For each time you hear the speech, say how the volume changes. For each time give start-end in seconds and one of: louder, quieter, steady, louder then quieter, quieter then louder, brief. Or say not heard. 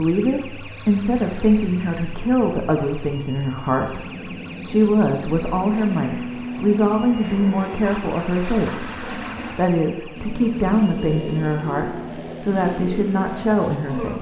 0.0-14.1 steady.